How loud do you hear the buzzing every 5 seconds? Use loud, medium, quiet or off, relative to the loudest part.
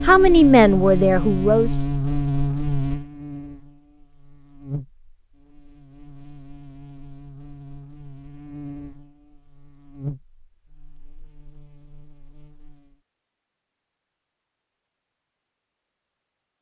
loud, quiet, quiet, off.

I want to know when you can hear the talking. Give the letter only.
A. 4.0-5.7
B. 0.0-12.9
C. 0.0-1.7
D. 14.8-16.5
C.